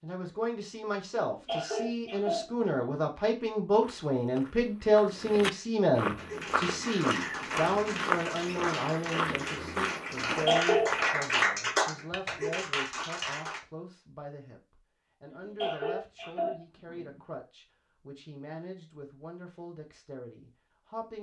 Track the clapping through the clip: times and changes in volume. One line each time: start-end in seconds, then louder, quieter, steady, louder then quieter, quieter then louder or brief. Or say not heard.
6.2-13.6 louder then quieter.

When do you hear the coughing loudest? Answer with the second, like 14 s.
11 s.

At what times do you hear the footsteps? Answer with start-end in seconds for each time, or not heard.
3.8-11.3.